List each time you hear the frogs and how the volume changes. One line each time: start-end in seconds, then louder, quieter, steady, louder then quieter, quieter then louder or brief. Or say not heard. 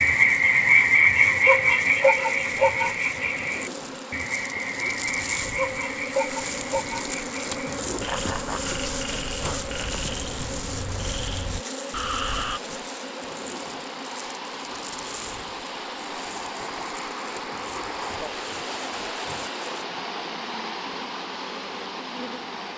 0.0-12.6 quieter.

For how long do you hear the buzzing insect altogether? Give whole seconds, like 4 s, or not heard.
23 s.